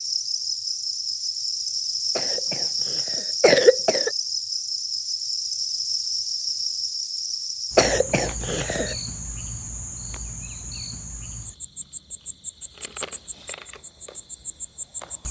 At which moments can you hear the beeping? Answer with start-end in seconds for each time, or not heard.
not heard.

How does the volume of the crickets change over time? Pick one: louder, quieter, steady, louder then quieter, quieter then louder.
quieter.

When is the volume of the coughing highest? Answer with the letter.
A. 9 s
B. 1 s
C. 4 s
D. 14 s
C.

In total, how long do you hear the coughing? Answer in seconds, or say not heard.
3 s.